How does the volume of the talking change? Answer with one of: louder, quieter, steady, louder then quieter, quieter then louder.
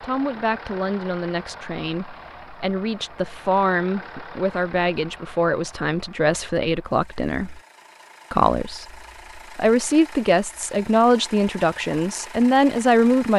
louder.